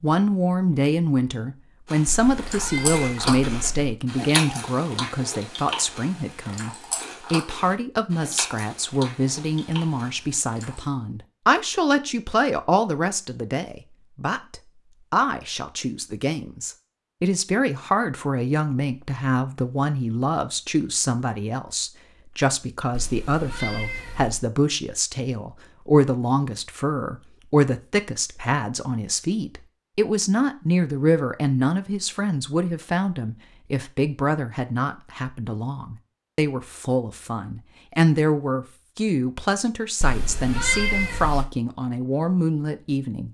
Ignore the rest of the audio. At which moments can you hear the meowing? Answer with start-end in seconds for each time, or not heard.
2.0-4.0, 22.9-24.4, 40.0-41.5.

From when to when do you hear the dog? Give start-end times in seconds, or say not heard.
not heard.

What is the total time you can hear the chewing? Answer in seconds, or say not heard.
9 s.